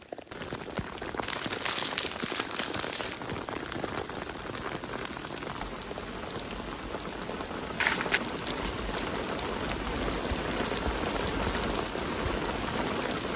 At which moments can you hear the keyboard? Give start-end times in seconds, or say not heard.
not heard.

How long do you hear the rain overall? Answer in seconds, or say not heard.
13 s.